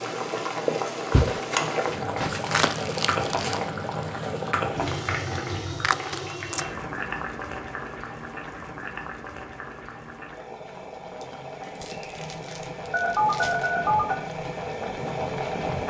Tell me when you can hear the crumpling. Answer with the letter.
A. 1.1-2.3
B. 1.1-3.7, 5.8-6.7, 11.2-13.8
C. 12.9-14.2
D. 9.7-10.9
B.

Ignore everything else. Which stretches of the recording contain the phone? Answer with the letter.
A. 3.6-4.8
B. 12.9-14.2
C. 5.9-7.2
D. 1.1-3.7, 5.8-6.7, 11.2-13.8
B.